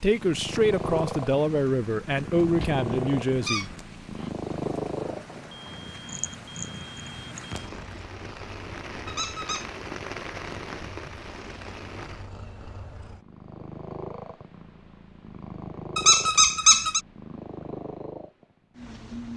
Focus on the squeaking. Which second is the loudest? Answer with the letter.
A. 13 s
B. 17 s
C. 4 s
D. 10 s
B.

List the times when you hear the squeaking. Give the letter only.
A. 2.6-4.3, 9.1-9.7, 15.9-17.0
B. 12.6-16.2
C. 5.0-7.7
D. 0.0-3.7
A.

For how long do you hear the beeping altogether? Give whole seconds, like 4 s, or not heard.
3 s.